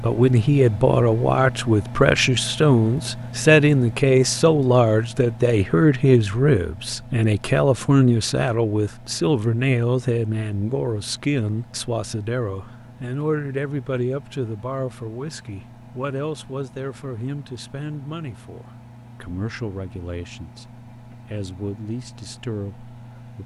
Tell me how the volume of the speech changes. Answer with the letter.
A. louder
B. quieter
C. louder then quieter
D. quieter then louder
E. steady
B.